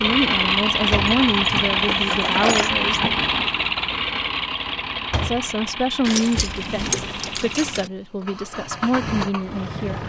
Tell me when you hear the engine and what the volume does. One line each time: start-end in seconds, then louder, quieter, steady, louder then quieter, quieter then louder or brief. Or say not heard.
0.0-10.0 quieter.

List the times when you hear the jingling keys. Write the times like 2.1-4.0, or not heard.
1.1-2.9, 6.0-7.8.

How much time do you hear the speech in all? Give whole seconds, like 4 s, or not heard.
8 s.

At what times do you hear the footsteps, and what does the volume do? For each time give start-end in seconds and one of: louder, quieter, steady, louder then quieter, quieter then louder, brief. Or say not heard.
not heard.